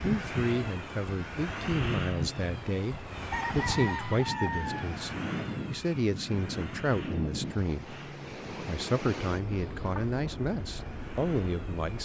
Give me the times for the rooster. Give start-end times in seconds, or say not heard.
3.3-4.9.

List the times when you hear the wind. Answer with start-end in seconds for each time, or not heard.
0.0-12.0.